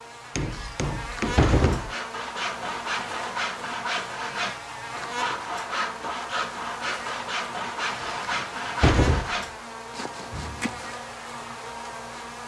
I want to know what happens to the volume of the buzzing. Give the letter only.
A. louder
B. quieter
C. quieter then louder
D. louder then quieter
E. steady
E.